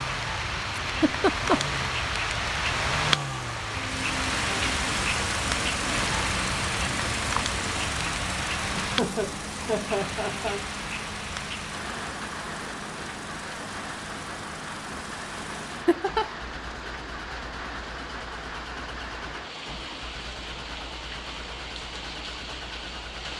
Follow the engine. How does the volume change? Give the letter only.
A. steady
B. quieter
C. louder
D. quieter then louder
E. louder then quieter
B.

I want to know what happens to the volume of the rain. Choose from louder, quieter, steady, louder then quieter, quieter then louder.
quieter.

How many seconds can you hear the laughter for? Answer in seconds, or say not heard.
3 s.